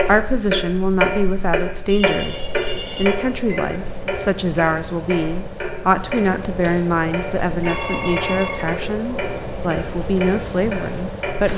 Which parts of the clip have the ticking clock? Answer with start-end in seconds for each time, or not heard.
0.0-11.5.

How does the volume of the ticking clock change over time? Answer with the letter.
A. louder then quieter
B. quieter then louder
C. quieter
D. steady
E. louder
C.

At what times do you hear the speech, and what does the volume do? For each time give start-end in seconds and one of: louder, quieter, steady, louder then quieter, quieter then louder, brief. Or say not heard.
0.0-11.5 steady.